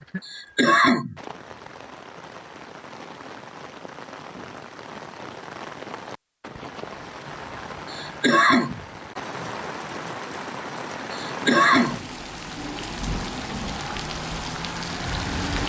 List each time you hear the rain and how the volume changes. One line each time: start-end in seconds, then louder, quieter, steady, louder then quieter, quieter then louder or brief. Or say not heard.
0.0-15.6 louder.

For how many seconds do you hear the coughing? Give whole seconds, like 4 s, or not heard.
3 s.